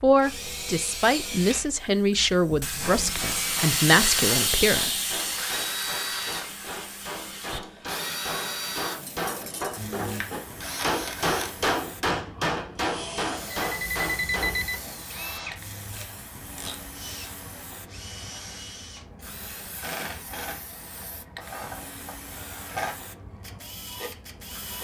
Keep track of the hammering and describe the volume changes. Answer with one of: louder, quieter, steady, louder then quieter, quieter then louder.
louder.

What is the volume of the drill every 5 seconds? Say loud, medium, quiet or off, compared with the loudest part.
loud, loud, loud, medium, loud.